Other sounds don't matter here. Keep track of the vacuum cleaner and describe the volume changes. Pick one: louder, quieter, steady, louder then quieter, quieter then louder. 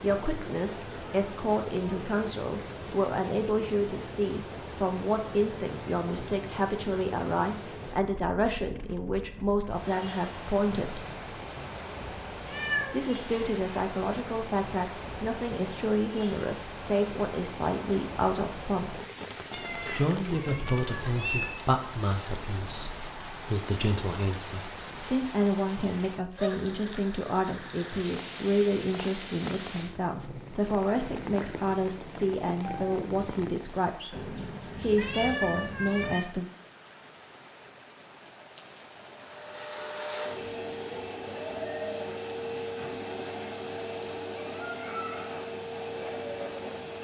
steady.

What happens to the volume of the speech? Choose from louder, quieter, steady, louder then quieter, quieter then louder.
steady.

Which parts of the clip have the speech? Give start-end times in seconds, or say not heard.
0.0-11.1, 12.9-18.9, 19.9-36.5.